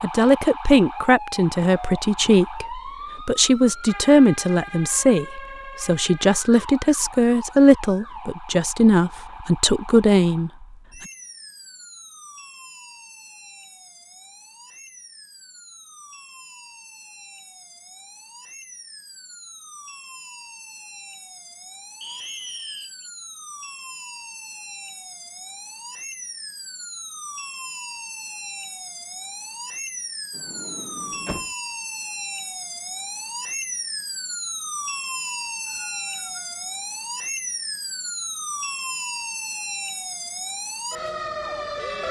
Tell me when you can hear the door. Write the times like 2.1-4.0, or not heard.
30.3-31.5.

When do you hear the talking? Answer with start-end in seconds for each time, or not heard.
0.0-10.5.